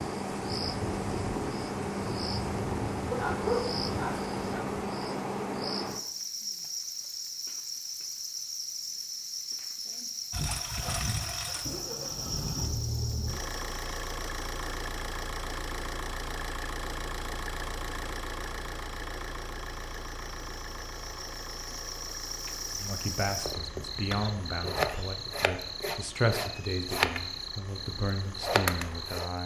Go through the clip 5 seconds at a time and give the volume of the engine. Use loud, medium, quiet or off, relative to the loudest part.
off, off, loud, loud, medium, quiet.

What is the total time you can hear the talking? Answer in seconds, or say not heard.
7 s.